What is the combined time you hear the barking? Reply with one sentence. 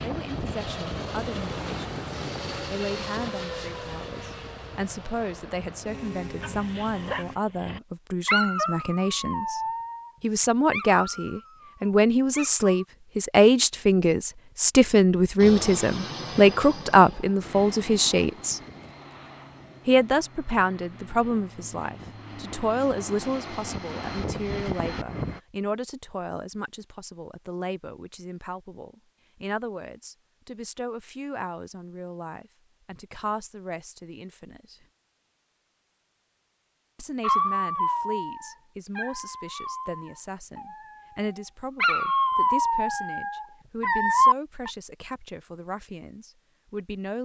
You can hear the barking for 13 seconds altogether.